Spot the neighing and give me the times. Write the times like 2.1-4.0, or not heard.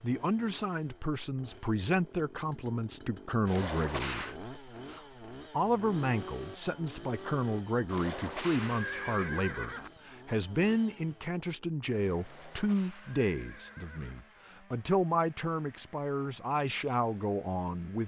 3.5-4.3, 7.8-9.9, 12.2-14.2.